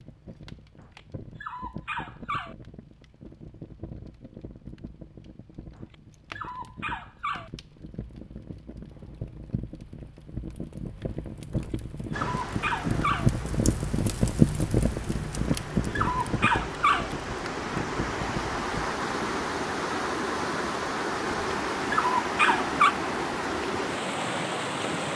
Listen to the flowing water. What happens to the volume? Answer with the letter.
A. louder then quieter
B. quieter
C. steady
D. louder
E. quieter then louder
D.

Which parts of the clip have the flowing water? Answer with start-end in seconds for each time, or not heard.
12.1-25.1.